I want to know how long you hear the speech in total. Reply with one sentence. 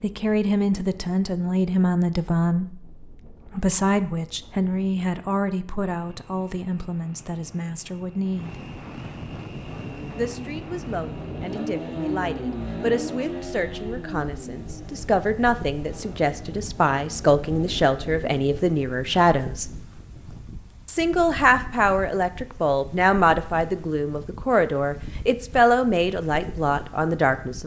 You can hear the speech for 25 seconds altogether.